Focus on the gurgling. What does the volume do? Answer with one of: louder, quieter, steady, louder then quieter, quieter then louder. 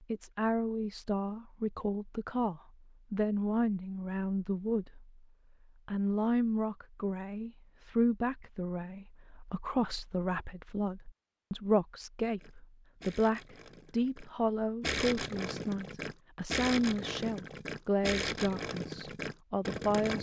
louder.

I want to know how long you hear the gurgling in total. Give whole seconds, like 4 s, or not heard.
8 s.